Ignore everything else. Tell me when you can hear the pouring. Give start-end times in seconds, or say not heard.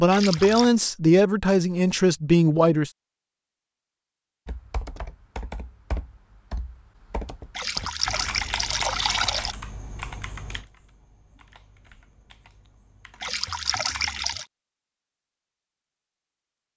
0.1-0.7, 7.5-9.6, 13.2-14.4.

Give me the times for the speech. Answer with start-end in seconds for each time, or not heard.
0.0-2.9.